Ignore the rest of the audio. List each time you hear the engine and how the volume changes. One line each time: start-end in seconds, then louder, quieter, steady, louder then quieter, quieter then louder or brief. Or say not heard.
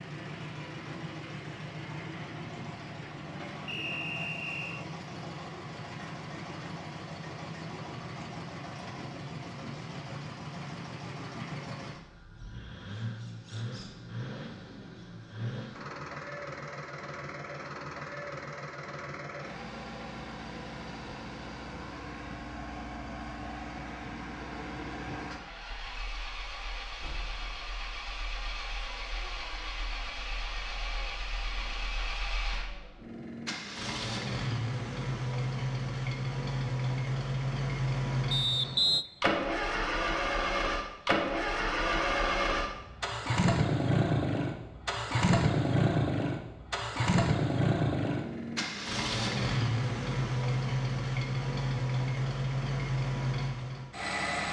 0.0-54.4 louder.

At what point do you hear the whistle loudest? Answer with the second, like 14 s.
39 s.